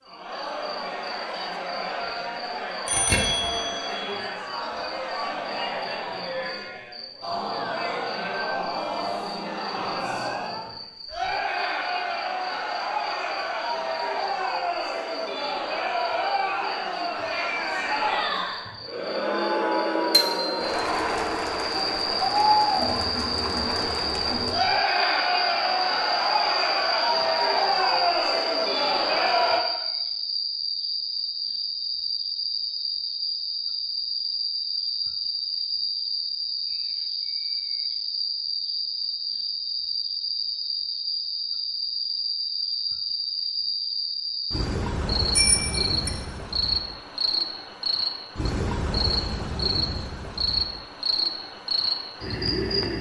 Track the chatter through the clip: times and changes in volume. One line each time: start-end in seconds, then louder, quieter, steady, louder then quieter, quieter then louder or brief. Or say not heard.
0.0-29.6 louder.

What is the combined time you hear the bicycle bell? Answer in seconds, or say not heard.
3 s.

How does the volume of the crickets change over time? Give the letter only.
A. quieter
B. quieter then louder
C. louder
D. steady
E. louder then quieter
C.